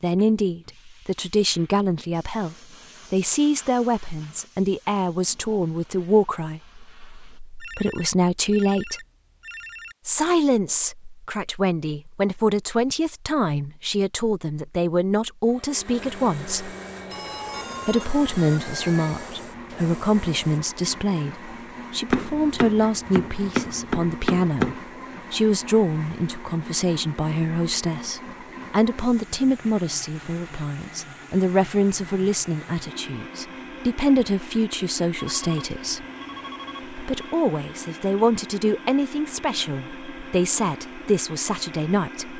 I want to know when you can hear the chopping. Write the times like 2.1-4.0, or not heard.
22.1-24.8.